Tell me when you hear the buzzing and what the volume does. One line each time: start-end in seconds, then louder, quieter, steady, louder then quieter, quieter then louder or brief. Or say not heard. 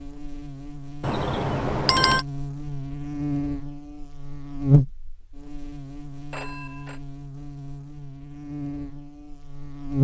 0.0-10.0 louder then quieter.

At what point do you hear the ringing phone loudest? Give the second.
2 s.